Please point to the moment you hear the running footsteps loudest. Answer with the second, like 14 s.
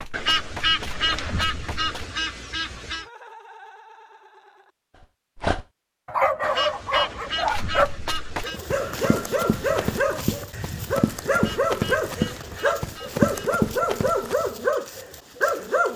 13 s.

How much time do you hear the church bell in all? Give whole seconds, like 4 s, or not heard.
not heard.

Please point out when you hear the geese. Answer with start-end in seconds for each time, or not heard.
0.1-3.0, 6.4-8.6, 11.3-13.6.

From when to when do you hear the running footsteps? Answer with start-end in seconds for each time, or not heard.
0.0-2.0, 7.5-14.4.